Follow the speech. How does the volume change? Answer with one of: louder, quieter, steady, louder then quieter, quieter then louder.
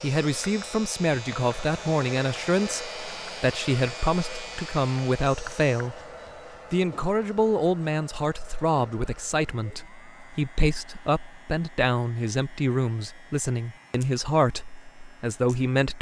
steady.